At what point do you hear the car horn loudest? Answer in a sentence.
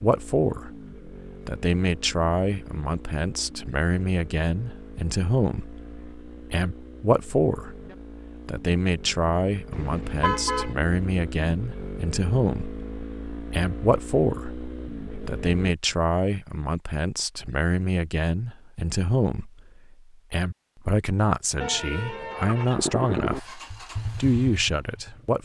The loudest moment of the car horn is at 10 seconds.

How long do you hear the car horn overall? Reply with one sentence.
The car horn can be heard for 2 seconds in total.